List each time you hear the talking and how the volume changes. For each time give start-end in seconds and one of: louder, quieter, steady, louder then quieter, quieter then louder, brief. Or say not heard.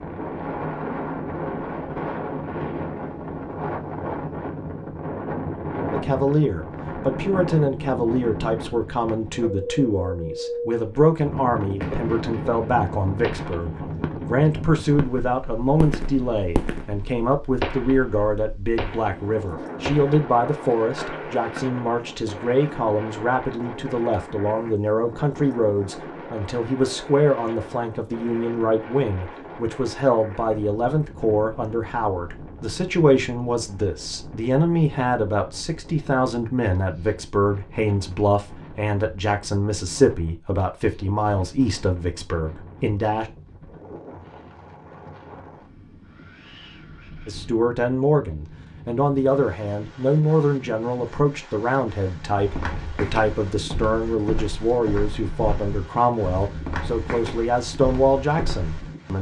5.9-43.2 steady
47.2-59.1 steady.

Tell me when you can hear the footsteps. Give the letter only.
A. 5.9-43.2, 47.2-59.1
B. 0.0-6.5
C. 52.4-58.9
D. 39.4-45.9
C.